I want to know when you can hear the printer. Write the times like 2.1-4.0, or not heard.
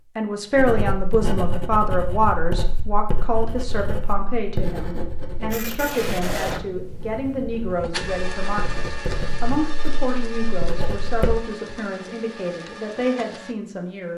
5.5-13.6.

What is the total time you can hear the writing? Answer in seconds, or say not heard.
11 s.